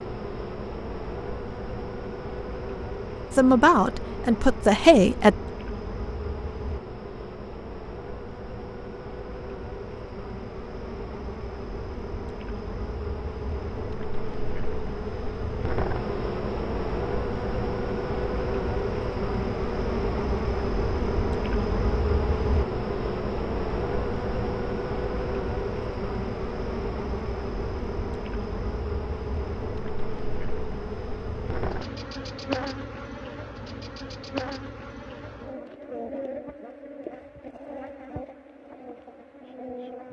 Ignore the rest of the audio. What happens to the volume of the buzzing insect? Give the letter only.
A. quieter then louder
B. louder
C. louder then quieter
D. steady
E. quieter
C.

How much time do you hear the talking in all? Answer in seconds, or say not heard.
2 s.